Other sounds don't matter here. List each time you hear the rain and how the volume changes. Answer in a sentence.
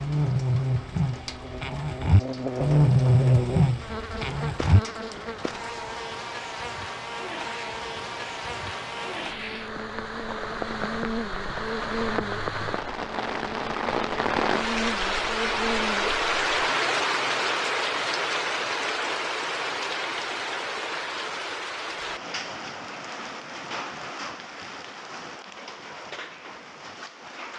You can hear the rain from 0.0 to 27.5 s, getting louder then quieter.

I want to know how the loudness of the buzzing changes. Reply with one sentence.
The volume of the buzzing stays about the same.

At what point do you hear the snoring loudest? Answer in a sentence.
The volume of the snoring peaks at 3 seconds.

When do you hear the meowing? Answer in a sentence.
The meowing can't be heard in this clip.